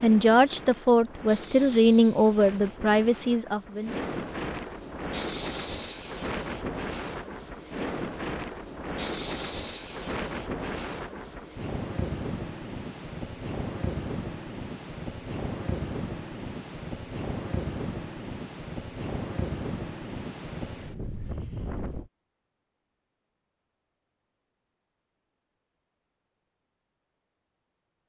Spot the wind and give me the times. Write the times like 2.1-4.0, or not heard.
0.0-22.1.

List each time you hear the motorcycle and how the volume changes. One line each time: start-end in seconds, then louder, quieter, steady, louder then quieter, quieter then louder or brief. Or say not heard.
not heard.